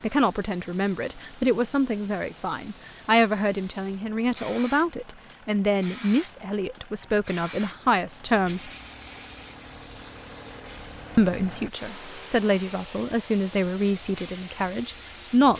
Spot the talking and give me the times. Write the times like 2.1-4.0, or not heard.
0.0-8.7, 11.2-15.5.